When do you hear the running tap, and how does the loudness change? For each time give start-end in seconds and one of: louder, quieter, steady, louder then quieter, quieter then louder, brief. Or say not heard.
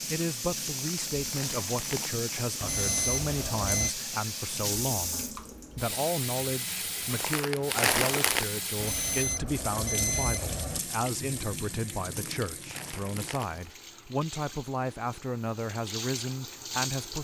0.0-17.1 quieter.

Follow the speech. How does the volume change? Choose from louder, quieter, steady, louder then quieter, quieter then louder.
steady.